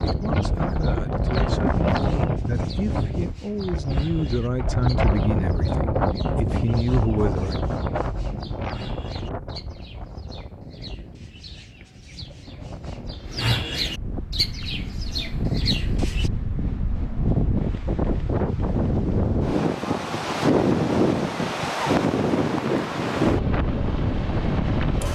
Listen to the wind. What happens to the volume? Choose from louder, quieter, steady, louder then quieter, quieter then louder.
quieter then louder.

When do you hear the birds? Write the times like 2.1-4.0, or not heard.
0.0-16.3.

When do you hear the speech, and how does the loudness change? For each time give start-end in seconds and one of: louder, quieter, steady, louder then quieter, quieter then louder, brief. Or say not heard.
0.0-7.6 louder.